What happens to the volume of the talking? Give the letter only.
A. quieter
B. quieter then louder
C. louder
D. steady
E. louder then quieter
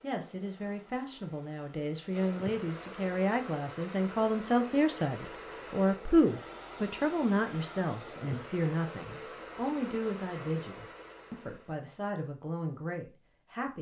E.